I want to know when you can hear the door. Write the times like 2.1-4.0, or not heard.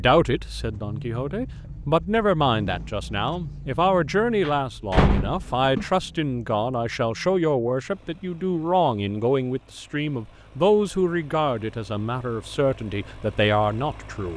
4.4-5.9.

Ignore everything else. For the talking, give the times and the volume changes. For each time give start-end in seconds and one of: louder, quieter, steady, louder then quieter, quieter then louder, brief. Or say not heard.
0.0-14.3 steady.